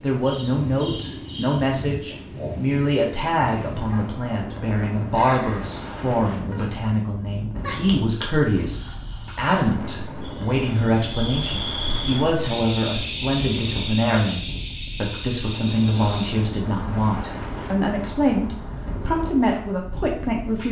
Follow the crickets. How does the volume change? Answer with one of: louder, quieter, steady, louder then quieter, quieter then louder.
louder then quieter.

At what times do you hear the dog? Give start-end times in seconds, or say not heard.
not heard.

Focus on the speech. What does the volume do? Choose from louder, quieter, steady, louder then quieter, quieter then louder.
steady.